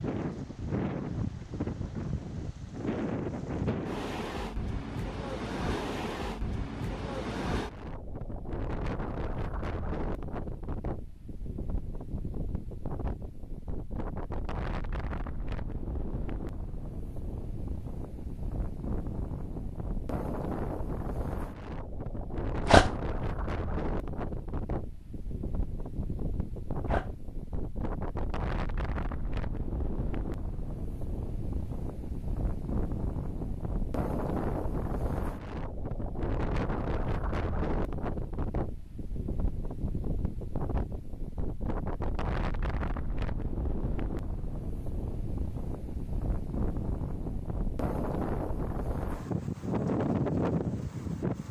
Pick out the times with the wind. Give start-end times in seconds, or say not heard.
0.0-51.4.